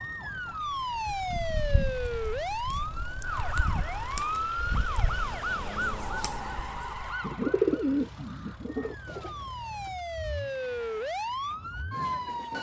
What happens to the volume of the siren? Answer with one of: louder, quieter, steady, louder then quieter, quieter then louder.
quieter then louder.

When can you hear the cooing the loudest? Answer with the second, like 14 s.
8 s.